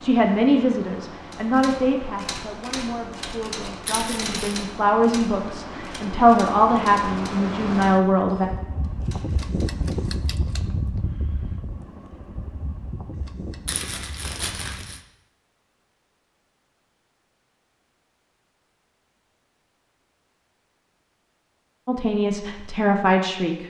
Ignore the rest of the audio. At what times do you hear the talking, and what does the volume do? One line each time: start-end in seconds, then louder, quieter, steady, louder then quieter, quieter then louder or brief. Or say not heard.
0.0-8.4 quieter then louder
21.9-23.6 brief.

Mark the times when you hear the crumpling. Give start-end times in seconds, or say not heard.
3.9-4.7, 13.7-15.0.